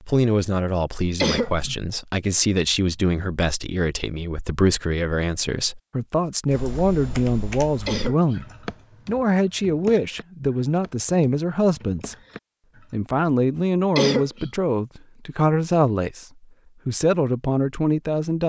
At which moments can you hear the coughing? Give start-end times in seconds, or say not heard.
1.2-1.8, 7.8-8.4, 13.9-14.5.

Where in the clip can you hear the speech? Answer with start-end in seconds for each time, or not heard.
0.1-12.2, 12.9-16.2, 16.9-18.4.